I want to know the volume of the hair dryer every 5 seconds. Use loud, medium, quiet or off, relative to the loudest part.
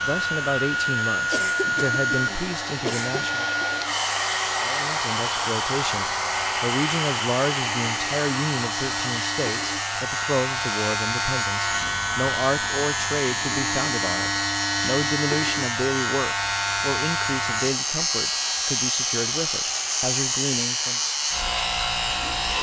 loud, loud, medium, medium, medium.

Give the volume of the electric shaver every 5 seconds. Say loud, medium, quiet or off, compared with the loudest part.
medium, medium, loud, loud, loud.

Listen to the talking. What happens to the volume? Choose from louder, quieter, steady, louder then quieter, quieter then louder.
steady.